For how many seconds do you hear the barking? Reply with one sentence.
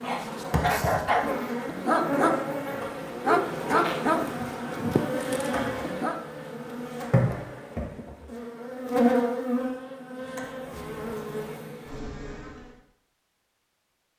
You can hear the barking for 6 seconds altogether.